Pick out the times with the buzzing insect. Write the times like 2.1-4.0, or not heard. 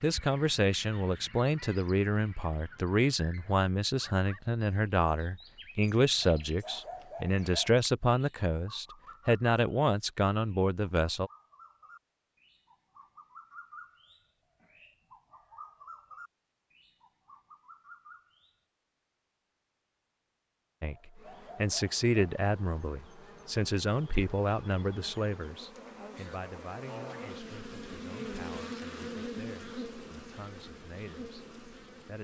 21.1-32.1.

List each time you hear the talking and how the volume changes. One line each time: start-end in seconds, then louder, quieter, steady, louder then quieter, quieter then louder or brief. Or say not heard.
0.0-11.3 steady
20.8-32.1 quieter.